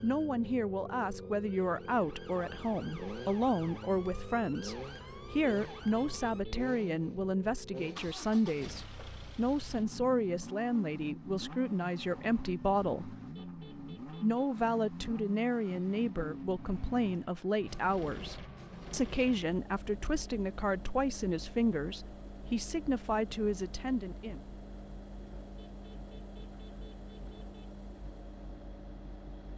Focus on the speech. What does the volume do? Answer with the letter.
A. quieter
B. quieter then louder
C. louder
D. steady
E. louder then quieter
D.